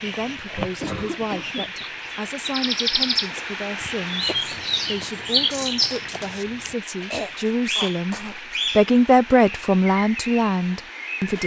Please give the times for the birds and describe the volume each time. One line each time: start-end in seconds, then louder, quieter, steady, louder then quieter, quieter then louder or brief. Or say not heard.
0.0-11.4 louder then quieter.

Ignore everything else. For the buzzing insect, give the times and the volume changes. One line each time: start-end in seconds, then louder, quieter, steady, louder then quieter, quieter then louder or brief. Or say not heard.
not heard.